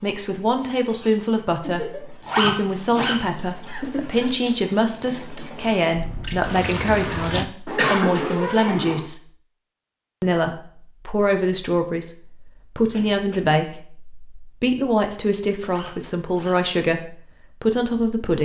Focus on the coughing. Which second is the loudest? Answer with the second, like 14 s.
8 s.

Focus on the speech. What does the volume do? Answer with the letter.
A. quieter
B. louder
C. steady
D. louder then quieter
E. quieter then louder
C.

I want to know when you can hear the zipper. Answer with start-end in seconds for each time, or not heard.
2.2-3.1, 7.7-9.1, 15.7-16.6.